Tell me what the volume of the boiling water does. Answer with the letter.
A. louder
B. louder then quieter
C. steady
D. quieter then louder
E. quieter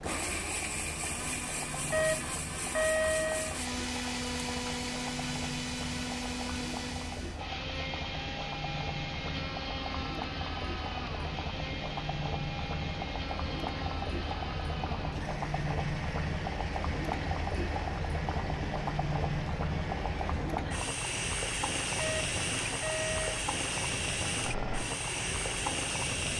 A.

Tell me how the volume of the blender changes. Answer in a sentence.
The loudness of the blender goes down.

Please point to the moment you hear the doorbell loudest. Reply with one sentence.
The volume of the doorbell peaks at 3 seconds.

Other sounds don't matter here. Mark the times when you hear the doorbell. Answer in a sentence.
You can hear the doorbell from 1.9 to 3.5 s and from 21.9 to 23.4 s.